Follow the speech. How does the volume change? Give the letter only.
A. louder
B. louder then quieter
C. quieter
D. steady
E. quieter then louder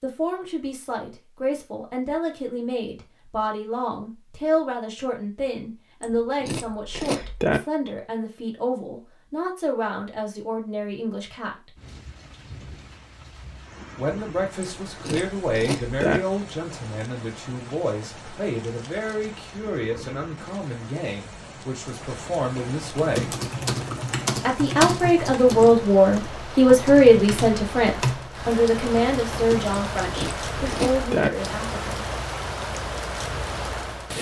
A.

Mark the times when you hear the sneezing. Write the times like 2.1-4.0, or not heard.
not heard.